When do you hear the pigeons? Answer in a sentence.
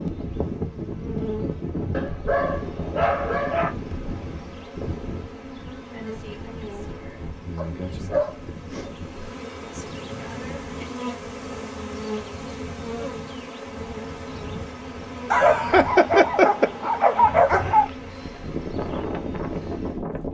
You can't hear the pigeons here.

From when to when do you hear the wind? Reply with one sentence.
The wind can be heard from 0.0 to 20.2 s.